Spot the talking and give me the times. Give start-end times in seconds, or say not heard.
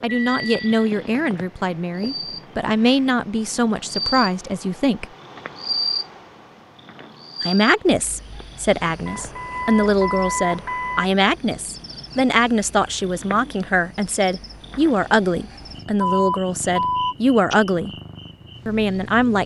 0.0-5.0, 7.4-17.9, 18.6-19.4.